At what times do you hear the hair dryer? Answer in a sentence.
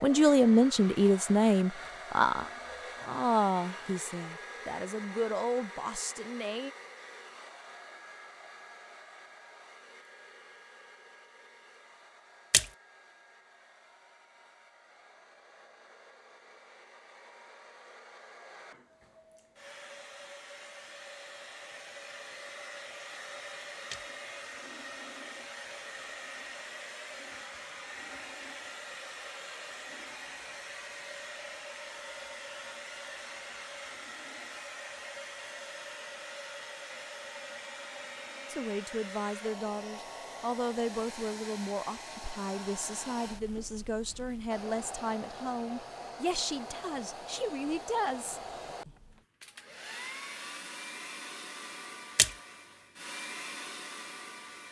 You can hear the hair dryer from 0.0 to 54.6 s.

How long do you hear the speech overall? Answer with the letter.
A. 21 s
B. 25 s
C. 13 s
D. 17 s
D.